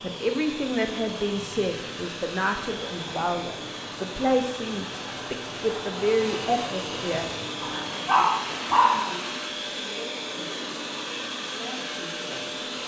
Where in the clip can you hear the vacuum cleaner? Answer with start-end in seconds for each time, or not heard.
0.0-12.8.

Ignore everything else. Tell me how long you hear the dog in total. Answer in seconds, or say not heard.
2 s.